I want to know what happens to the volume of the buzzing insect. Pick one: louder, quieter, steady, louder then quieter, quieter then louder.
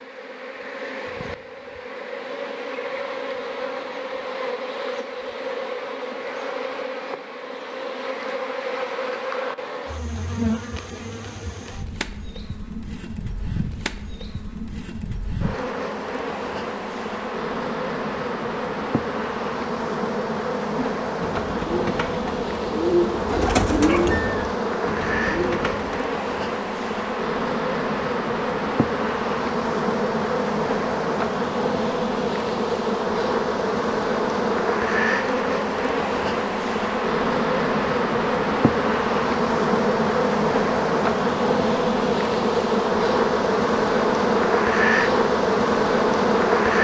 louder.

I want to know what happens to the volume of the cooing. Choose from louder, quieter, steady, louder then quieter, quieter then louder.
louder then quieter.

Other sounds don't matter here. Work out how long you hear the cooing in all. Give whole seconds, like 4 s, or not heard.
5 s.